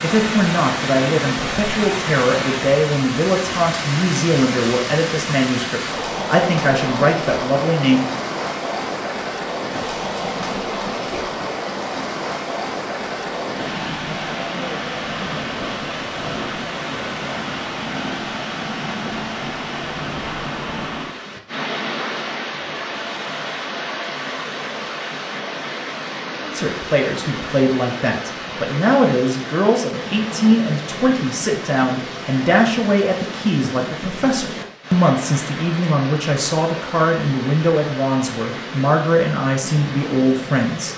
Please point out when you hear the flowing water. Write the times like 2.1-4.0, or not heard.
0.0-40.9.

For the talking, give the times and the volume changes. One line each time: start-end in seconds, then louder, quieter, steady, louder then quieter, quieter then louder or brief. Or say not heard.
0.0-8.1 steady
26.4-40.9 steady.